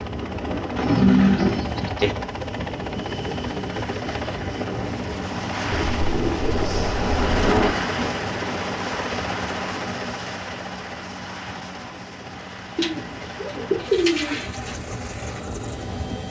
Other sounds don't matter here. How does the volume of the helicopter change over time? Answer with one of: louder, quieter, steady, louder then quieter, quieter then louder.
louder then quieter.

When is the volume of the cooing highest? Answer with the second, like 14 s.
1 s.